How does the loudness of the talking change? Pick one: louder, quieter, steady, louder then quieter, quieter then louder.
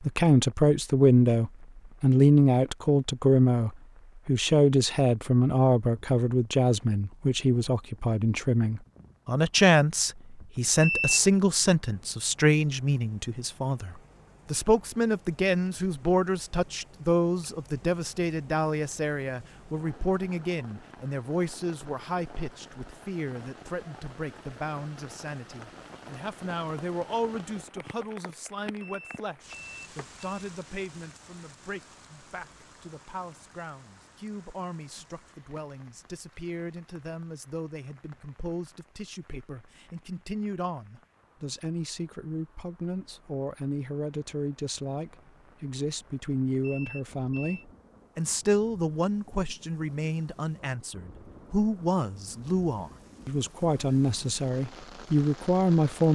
quieter then louder.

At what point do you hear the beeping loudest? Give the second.
11 s.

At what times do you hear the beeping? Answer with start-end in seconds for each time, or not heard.
10.8-11.3, 28.8-30.2, 46.6-47.6.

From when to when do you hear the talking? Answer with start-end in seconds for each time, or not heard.
0.0-56.1.